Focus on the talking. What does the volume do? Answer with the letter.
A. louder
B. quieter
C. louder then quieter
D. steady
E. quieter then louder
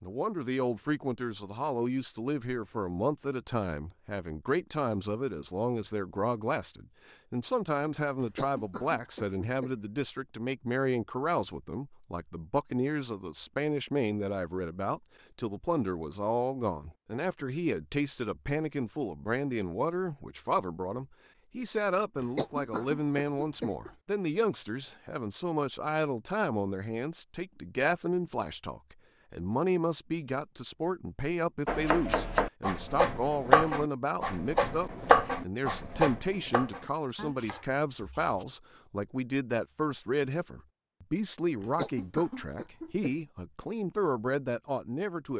D.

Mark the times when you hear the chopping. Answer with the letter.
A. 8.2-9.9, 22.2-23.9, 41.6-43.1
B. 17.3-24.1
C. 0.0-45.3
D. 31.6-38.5
D.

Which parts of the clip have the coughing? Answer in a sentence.
The coughing can be heard from 8.2 to 9.9 s, from 22.2 to 23.9 s and from 41.6 to 43.1 s.